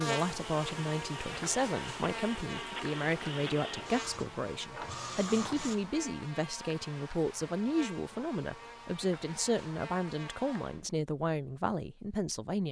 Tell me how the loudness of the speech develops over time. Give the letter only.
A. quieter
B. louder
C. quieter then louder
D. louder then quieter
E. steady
E.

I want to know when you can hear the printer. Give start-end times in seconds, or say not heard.
0.2-5.8.